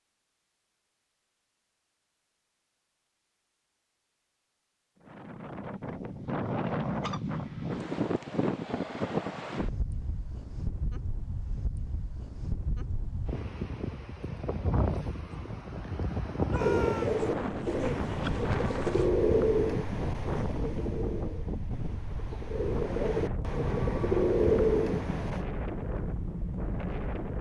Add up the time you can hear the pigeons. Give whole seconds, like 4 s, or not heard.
9 s.